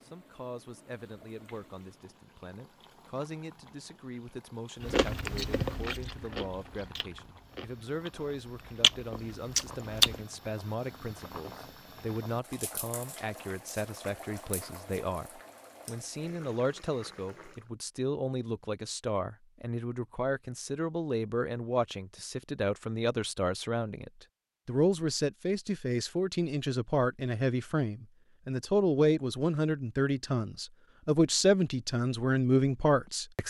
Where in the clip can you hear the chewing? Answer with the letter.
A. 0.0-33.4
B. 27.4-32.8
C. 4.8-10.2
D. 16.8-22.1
C.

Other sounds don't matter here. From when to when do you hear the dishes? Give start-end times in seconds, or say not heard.
not heard.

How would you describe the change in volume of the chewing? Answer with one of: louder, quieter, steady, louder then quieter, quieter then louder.
quieter then louder.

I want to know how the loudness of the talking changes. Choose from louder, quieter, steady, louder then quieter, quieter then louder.
louder.